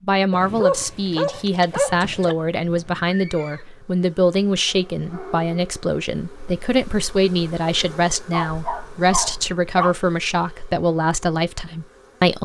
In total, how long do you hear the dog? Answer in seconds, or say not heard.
5 s.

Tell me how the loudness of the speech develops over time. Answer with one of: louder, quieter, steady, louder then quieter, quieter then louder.
steady.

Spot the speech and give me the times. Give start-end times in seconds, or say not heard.
0.0-12.4.